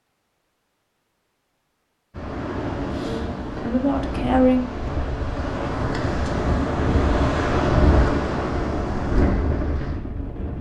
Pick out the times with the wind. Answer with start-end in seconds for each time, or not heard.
2.1-10.5.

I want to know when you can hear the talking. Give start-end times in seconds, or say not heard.
3.0-4.7.